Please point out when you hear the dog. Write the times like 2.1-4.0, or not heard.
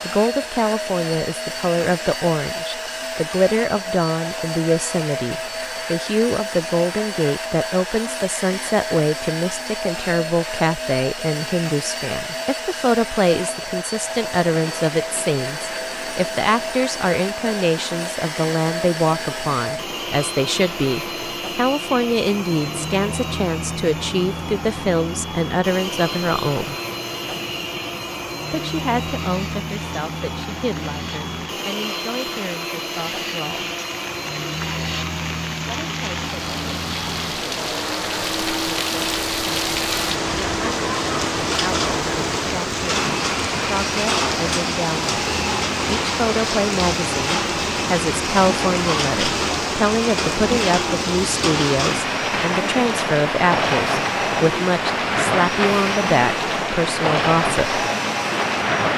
not heard.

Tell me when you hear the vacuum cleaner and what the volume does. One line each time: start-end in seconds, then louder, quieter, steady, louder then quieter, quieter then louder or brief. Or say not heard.
0.0-58.9 steady.